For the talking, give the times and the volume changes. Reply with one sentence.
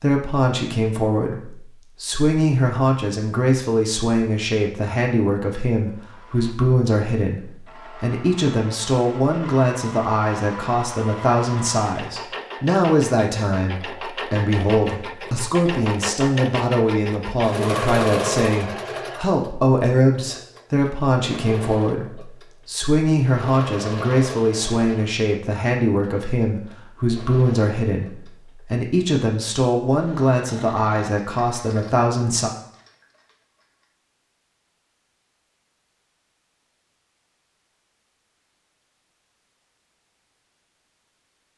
You can hear the talking from 0.0 to 32.5 s, at a steady volume.